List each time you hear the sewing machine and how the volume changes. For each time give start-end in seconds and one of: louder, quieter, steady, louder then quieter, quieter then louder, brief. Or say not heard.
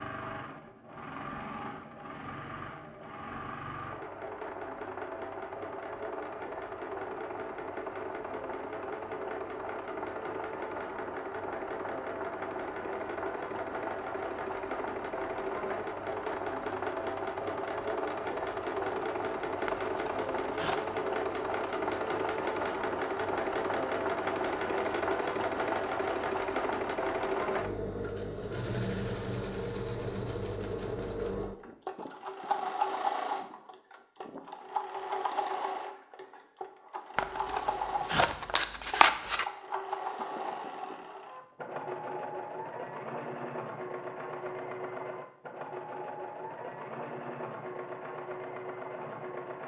0.0-49.6 louder then quieter.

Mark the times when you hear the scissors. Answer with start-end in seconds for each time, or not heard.
19.6-20.9, 37.1-39.5.